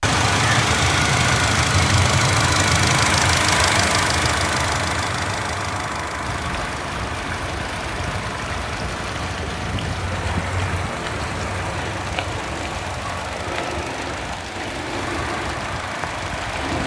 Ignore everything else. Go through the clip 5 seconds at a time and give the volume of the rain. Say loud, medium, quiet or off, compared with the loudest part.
off, loud, loud, loud.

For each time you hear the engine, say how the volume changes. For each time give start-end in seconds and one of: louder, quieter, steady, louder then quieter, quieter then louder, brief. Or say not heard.
0.0-16.8 quieter.